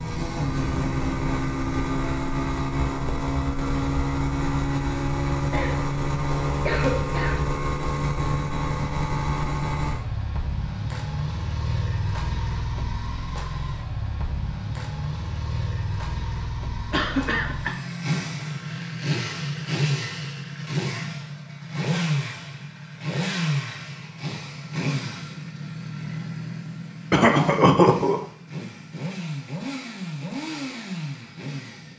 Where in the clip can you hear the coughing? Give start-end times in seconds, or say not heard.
5.5-7.4, 16.9-17.8, 27.1-28.2.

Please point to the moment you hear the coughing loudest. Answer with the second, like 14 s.
28 s.